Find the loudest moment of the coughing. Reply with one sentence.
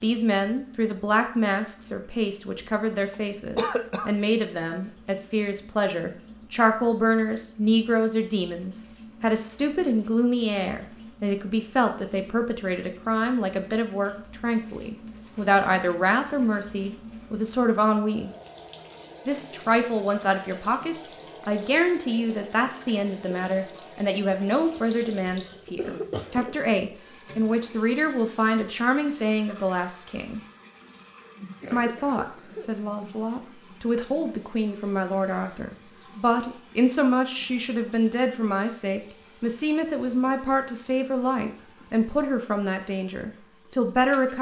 The volume of the coughing peaks at 4 seconds.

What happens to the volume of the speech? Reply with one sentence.
The loudness of the speech stays about the same.